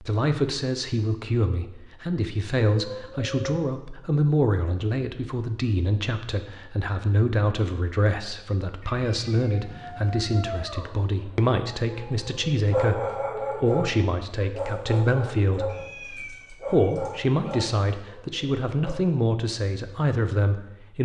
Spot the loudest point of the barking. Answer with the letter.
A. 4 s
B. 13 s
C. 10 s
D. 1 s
B.